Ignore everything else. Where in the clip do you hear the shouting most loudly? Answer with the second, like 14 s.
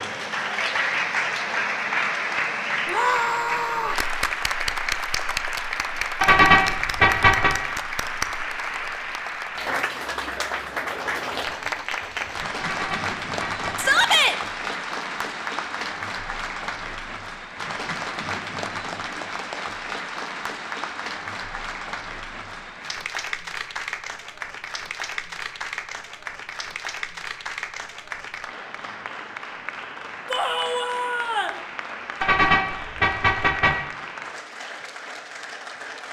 14 s.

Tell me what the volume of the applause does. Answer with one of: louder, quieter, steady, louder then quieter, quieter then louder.
quieter.